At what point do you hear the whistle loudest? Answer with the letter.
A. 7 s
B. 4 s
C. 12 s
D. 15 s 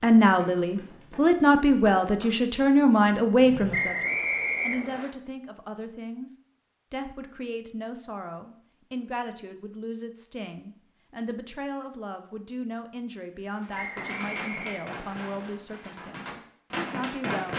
B.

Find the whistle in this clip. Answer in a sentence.
You can hear the whistle from 3.7 to 5.1 s and from 13.7 to 15.2 s.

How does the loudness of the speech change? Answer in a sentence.
The volume of the speech goes down.